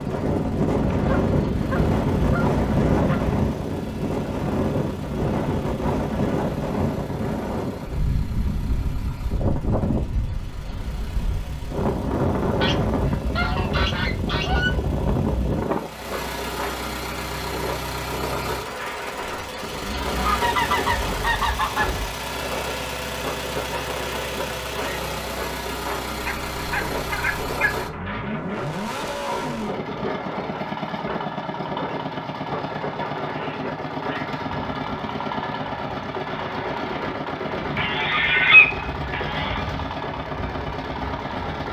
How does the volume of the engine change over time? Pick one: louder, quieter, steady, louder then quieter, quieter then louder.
louder.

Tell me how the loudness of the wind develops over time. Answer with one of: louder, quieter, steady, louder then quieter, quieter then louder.
quieter.